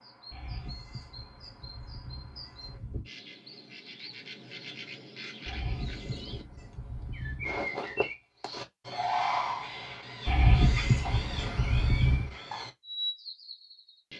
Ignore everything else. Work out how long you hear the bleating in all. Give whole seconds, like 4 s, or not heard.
7 s.